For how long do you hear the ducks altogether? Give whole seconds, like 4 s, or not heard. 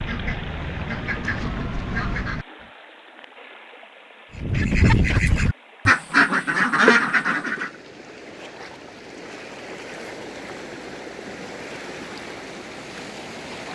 6 s.